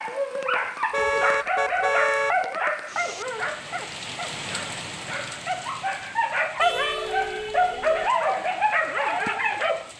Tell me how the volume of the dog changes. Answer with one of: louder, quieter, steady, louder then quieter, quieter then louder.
quieter then louder.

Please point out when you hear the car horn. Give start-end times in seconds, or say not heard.
0.9-2.4, 6.6-8.1.